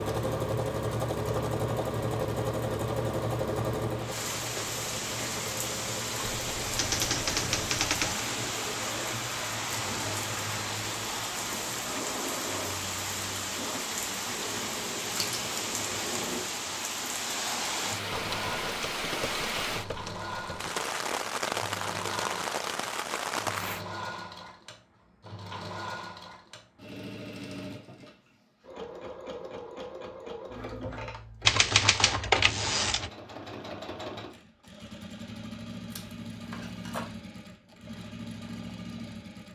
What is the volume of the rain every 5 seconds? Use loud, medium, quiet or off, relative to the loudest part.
medium, loud, loud, loud, loud, off, off, off.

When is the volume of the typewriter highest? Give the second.
32 s.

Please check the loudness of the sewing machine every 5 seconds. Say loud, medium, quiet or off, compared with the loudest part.
loud, medium, medium, medium, medium, medium, medium, medium.